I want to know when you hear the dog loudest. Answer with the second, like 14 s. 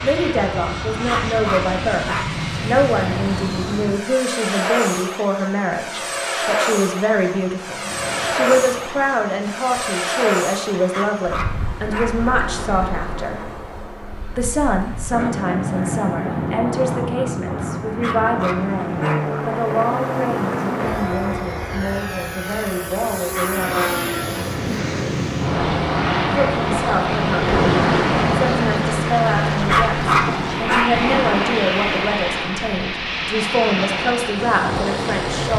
30 s.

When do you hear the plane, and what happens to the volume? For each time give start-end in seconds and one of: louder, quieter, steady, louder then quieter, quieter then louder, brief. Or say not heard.
0.0-35.5 steady.